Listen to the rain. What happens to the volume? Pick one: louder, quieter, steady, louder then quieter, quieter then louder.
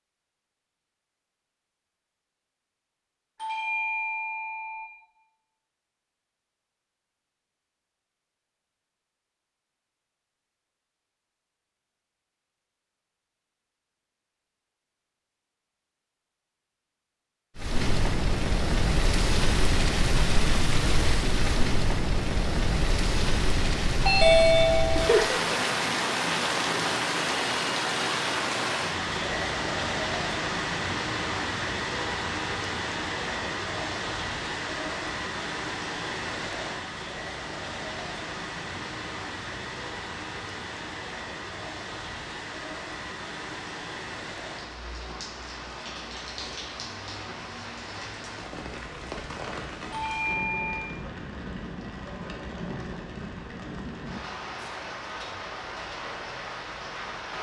quieter.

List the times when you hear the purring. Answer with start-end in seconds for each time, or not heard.
not heard.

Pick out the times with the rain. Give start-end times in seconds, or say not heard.
17.6-57.3.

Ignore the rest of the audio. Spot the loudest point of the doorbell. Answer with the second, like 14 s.
24 s.